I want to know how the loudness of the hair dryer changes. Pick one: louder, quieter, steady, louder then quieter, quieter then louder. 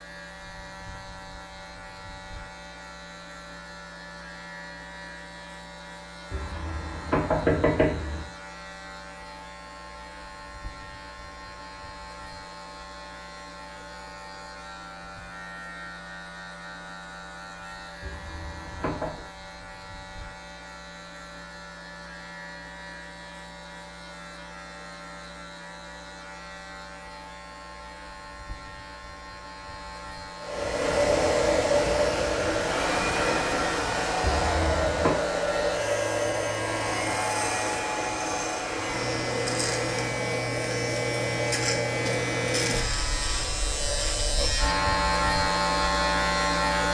quieter.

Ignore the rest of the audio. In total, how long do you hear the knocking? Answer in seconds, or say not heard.
4 s.